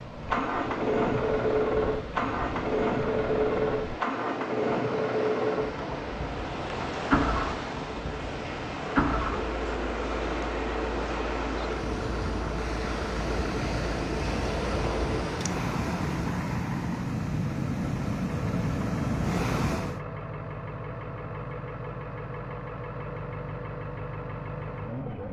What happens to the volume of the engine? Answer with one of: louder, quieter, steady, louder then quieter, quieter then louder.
quieter.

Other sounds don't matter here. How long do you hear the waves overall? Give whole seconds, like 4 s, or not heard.
20 s.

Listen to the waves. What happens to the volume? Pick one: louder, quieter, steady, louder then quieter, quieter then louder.
louder.